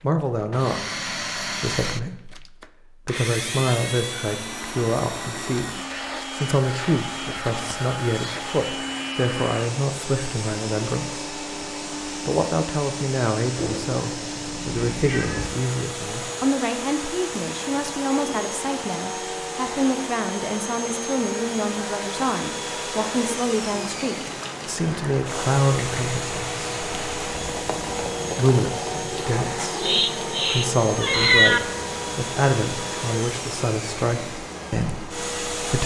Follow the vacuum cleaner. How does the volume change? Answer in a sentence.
The volume of the vacuum cleaner stays about the same.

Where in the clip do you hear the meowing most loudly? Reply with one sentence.
The loudest moment of the meowing is at 31 seconds.